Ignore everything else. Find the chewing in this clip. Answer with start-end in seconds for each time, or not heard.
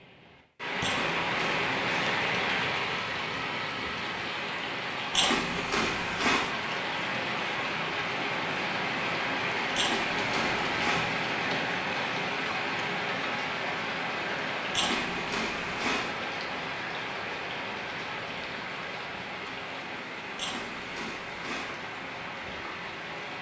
0.8-2.1, 5.1-6.5, 9.8-11.1, 14.7-16.1, 20.4-21.8.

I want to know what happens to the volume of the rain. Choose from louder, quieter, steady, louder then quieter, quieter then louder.
quieter.